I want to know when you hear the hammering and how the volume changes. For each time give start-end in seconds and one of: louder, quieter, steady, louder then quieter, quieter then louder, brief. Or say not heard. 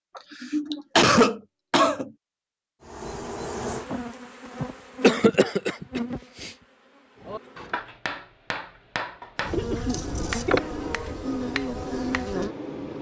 7.2-12.9 steady.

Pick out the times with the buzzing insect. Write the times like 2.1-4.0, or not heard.
2.9-7.8, 9.4-12.7.